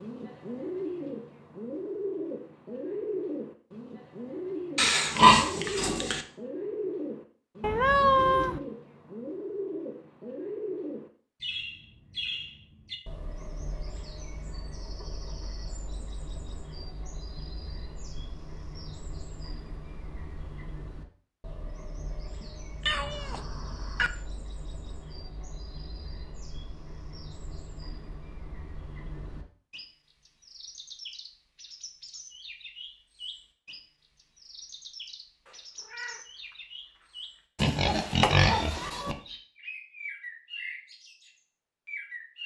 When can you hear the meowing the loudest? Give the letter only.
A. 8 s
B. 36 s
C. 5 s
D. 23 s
A.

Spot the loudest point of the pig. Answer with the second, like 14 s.
5 s.